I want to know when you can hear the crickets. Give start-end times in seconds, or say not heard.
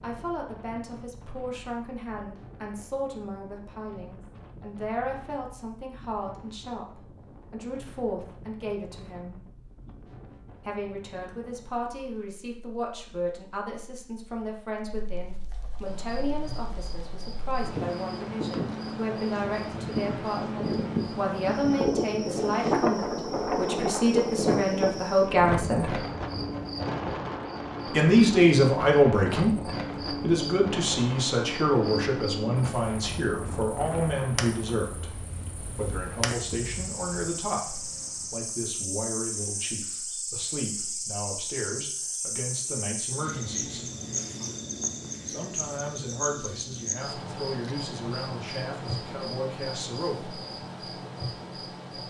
15.8-52.0.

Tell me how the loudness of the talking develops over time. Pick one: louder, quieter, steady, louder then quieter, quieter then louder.
louder then quieter.